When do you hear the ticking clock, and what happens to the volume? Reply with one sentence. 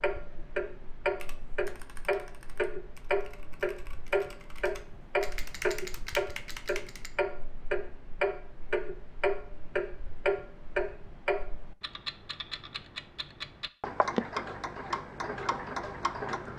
You can hear the ticking clock from 0.0 to 16.5 s, at a steady volume.